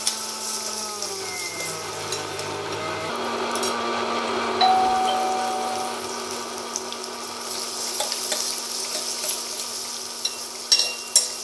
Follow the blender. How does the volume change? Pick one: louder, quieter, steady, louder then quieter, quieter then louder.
louder then quieter.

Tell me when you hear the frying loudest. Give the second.
11 s.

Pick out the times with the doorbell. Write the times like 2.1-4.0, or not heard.
4.6-6.0.